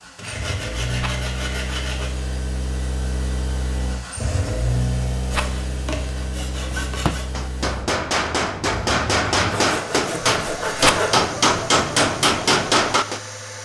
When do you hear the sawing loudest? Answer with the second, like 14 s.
11 s.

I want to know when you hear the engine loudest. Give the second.
5 s.